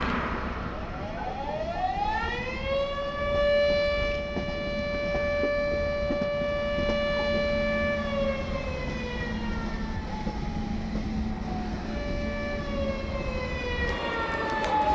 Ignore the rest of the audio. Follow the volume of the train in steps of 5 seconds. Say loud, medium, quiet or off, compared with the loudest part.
medium, loud, loud.